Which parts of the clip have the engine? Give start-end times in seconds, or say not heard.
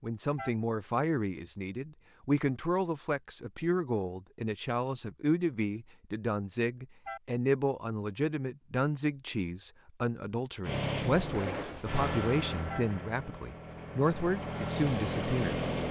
10.6-15.8.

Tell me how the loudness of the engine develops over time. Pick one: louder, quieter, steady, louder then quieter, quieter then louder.
quieter then louder.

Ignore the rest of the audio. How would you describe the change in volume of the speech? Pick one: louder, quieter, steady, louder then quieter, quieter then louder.
steady.